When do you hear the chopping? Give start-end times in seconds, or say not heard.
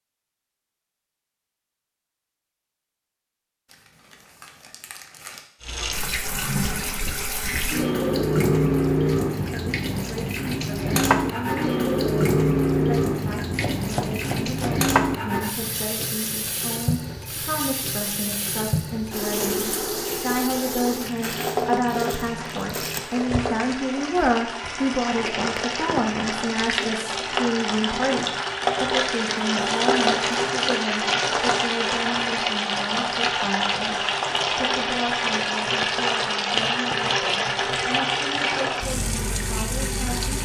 13.5-14.8.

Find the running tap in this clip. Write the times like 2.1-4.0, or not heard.
5.6-40.4.